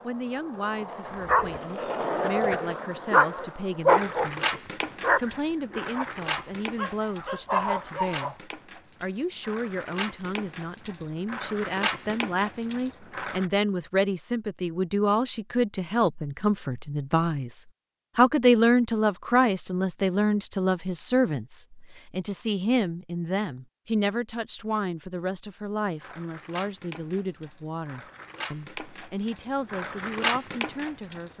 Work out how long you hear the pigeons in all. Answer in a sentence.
You can't hear the pigeons here.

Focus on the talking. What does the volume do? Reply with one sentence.
The loudness of the talking goes up, then down.